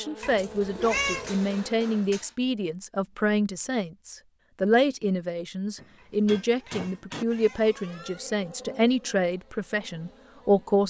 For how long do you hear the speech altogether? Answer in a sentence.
The speech can be heard for 11 seconds in total.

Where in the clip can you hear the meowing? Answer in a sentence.
You can hear the meowing from 0.2 to 1.3 s and from 6.0 to 8.3 s.